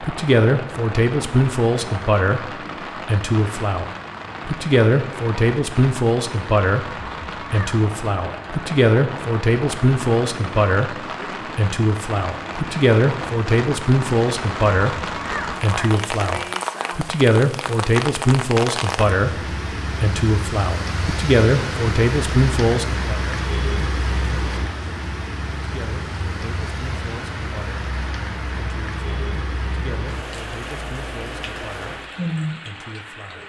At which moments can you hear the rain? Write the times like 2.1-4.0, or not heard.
0.0-33.4.